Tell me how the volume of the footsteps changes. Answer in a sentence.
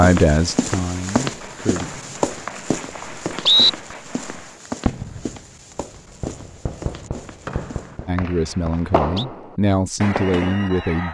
The volume of the footsteps goes down.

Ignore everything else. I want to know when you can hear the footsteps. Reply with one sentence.
You can hear the footsteps from 0.0 to 8.0 s.